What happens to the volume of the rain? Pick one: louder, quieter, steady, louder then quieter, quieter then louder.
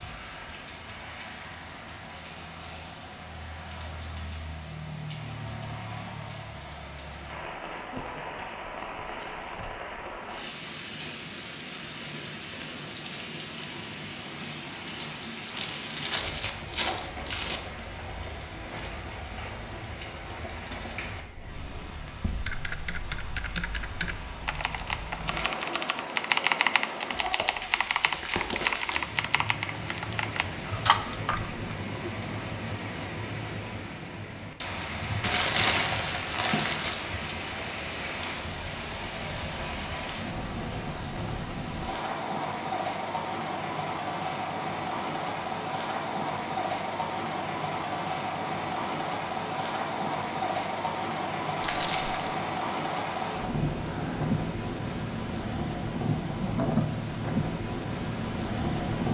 louder.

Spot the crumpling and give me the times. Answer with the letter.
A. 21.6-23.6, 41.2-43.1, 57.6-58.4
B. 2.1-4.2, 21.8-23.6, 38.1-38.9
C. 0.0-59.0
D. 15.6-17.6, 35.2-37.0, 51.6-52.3
D.